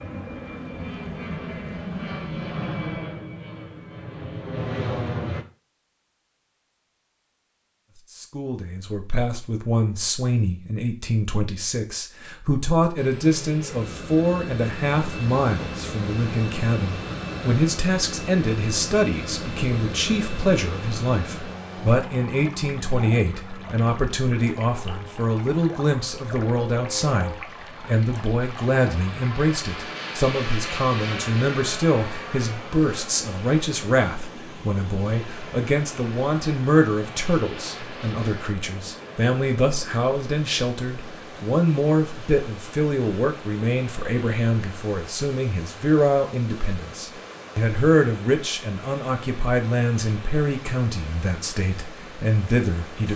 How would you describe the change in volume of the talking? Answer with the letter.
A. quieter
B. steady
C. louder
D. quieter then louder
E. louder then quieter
B.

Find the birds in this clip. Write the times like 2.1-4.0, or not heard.
not heard.